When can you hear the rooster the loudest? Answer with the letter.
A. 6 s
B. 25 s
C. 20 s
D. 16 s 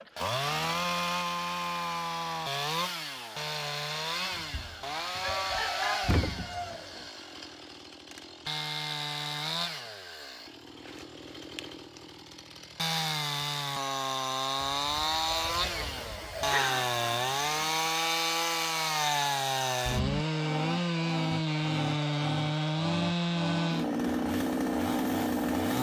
A.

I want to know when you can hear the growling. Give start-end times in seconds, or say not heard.
16.4-17.8.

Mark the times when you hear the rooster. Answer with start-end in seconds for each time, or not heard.
4.3-7.0, 14.8-16.6.